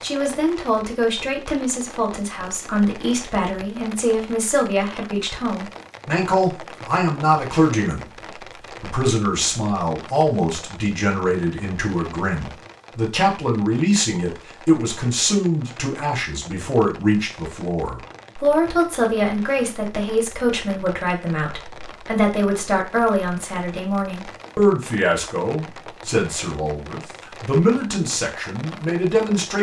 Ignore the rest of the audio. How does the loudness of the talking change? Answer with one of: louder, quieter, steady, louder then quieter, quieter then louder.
steady.